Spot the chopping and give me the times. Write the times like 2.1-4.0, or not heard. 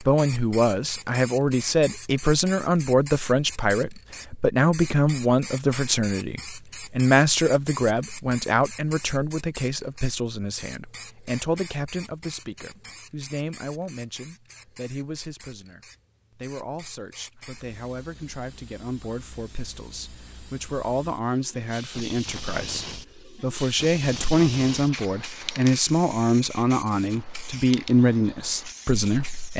not heard.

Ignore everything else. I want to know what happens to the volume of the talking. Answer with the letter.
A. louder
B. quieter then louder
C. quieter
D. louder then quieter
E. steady
B.